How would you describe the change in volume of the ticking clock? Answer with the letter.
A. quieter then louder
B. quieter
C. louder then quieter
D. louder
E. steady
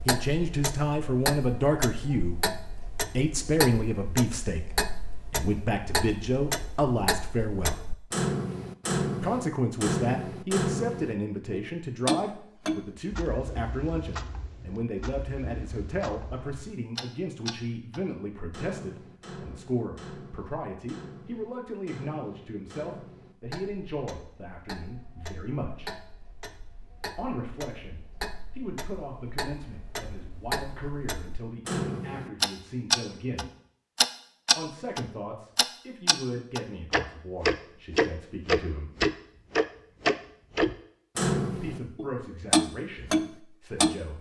A.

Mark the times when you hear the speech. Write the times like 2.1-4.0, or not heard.
0.1-7.8, 9.2-25.9, 27.1-33.5, 34.5-38.9, 41.5-44.1.